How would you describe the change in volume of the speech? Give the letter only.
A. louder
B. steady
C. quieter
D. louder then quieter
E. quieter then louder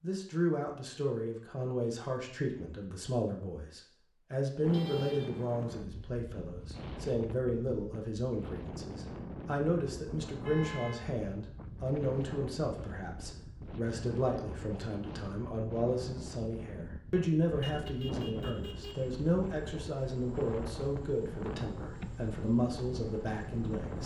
B.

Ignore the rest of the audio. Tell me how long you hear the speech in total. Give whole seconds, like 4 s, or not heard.
24 s.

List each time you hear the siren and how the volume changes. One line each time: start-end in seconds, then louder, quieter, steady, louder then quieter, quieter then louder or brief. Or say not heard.
not heard.